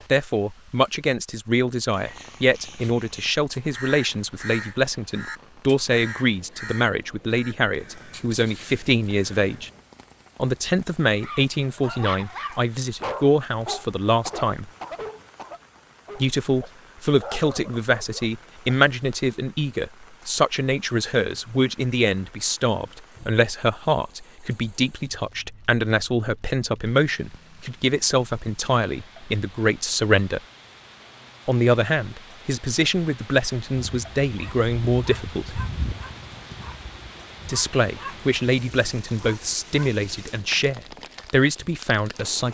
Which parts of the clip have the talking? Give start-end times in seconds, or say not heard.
0.1-9.7, 10.3-14.7, 16.1-30.4, 31.4-35.6, 37.5-42.4.